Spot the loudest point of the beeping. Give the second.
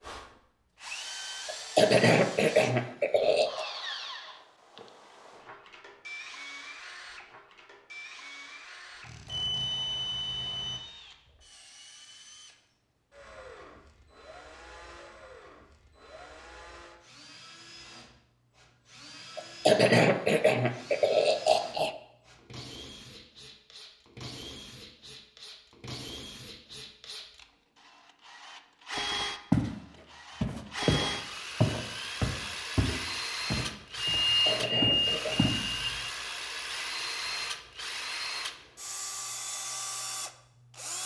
34 s.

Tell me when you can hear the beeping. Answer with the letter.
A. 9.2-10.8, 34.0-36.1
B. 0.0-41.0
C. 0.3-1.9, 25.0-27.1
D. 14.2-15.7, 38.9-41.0
A.